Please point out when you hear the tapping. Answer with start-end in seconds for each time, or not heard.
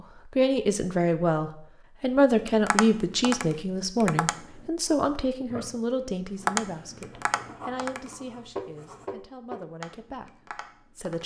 2.4-4.7, 6.5-11.2.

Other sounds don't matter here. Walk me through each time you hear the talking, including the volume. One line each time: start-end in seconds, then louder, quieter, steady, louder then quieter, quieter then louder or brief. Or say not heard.
0.0-11.2 quieter.